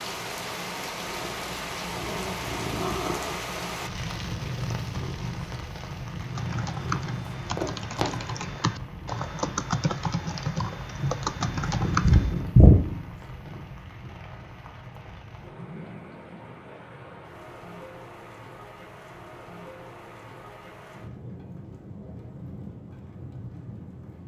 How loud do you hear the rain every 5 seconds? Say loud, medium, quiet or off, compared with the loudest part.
loud, medium, medium, medium, medium.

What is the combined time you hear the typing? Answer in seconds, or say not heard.
6 s.